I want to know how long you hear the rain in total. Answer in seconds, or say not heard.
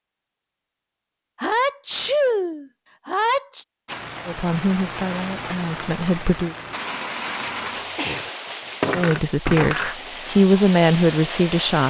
8 s.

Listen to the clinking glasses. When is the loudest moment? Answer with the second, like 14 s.
9 s.